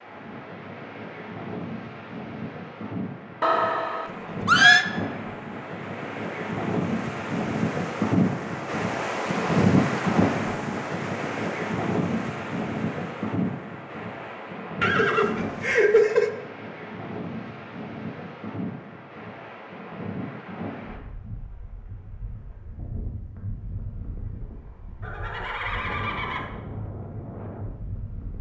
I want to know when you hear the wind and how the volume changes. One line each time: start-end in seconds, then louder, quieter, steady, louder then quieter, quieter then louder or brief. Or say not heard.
0.0-28.3 louder then quieter.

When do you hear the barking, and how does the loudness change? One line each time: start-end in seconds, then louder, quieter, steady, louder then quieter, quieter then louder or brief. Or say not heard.
not heard.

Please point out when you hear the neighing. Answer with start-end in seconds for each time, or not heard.
3.4-4.8, 14.8-16.3, 25.0-26.5.